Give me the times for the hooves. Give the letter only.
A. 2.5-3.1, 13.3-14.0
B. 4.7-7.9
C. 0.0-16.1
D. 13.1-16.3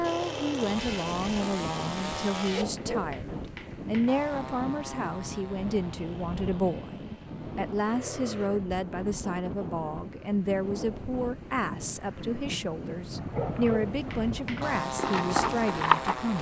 D.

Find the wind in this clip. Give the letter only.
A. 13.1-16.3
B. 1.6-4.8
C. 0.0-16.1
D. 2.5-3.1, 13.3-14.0
C.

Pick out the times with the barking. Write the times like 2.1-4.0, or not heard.
2.5-3.1, 13.3-14.0.